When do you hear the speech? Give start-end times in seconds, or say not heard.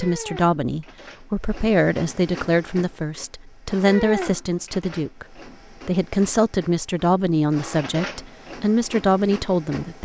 0.0-5.2, 5.8-10.0.